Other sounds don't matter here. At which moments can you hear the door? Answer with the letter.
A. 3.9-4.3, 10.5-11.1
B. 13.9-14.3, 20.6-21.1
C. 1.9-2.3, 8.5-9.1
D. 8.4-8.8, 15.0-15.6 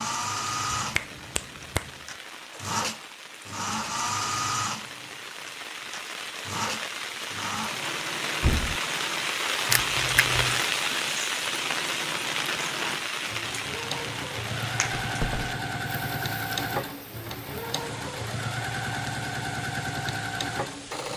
D.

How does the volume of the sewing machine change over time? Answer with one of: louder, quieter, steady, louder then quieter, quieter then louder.
quieter then louder.